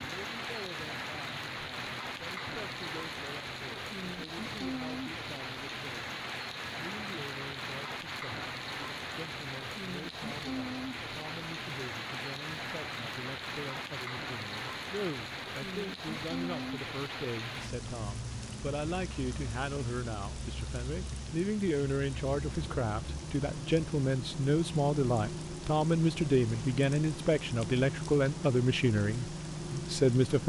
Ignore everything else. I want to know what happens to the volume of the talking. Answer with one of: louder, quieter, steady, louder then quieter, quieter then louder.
louder.